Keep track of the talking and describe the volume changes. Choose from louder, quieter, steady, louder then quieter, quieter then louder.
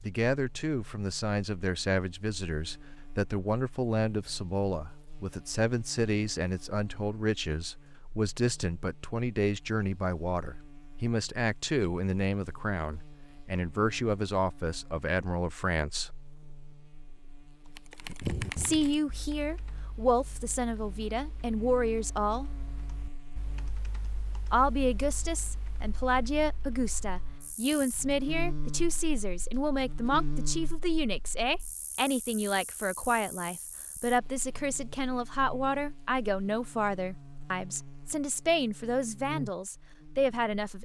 steady.